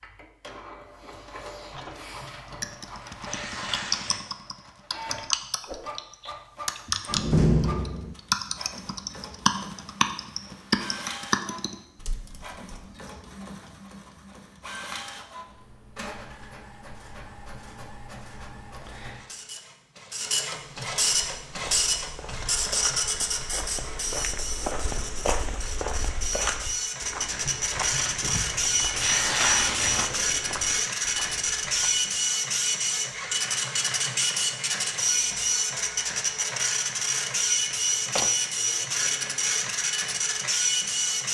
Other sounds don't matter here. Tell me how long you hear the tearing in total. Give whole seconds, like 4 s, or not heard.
5 s.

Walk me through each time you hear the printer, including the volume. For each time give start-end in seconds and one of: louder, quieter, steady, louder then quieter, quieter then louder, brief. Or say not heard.
0.0-41.2 louder.